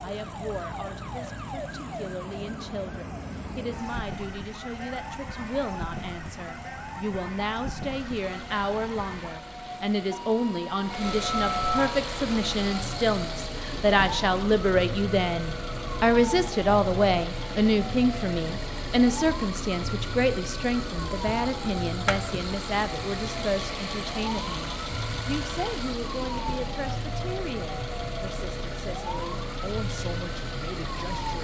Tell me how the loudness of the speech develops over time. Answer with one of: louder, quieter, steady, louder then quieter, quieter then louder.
louder then quieter.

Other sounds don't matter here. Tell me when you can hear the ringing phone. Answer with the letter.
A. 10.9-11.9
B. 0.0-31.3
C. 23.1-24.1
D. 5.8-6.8
A.